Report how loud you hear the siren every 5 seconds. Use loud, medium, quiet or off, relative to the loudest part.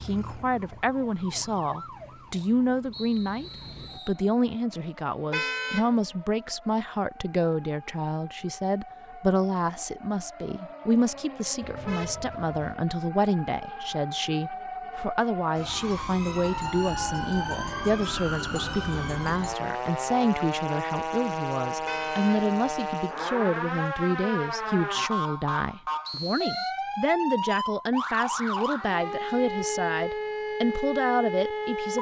quiet, quiet, medium, loud, loud, loud, loud.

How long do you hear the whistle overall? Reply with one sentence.
The whistle can be heard for 2 seconds in total.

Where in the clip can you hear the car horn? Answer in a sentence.
You can hear the car horn from 5.3 to 5.9 s, from 11.6 to 12.8 s and from 21.9 to 22.4 s.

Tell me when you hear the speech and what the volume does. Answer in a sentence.
You can hear the speech from 0.0 to 31.9 s, at a steady volume.